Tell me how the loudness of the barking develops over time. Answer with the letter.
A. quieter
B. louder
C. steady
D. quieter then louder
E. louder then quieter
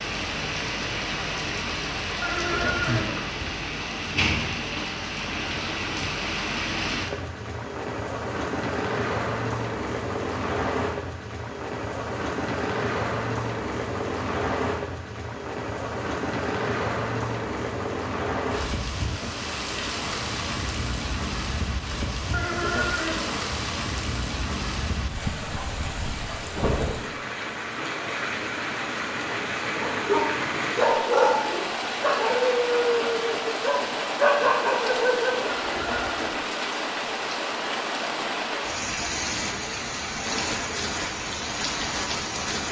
D.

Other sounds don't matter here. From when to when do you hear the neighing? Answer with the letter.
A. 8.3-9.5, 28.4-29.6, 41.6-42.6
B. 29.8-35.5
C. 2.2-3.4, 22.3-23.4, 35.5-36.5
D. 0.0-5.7
C.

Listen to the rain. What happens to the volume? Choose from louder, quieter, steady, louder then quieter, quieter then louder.
steady.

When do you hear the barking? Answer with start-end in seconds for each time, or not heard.
29.8-35.5.